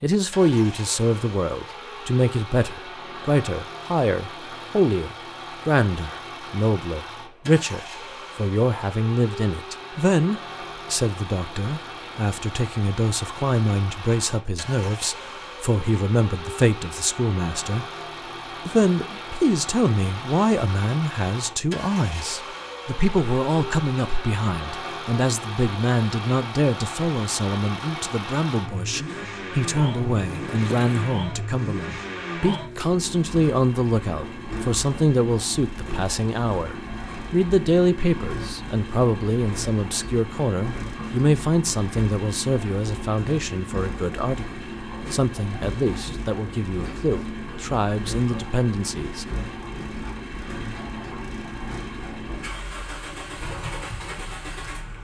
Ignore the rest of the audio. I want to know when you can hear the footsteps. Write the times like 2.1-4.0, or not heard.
not heard.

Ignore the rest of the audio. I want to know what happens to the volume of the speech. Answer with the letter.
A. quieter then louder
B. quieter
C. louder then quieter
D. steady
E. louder
D.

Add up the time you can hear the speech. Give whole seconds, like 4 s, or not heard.
48 s.